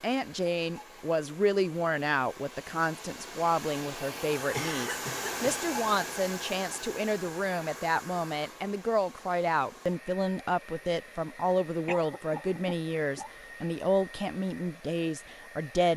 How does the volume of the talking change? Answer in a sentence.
The loudness of the talking stays about the same.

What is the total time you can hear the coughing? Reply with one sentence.
The coughing can be heard for 3 seconds in total.